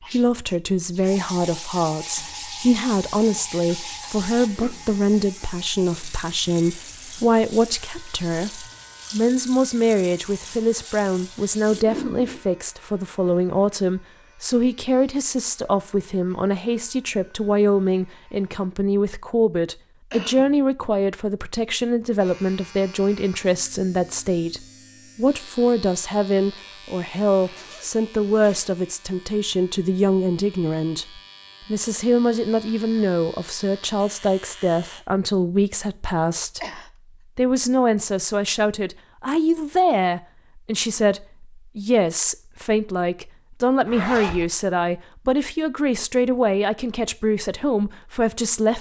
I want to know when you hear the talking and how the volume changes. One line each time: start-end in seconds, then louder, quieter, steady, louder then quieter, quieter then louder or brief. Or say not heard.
0.0-48.7 steady.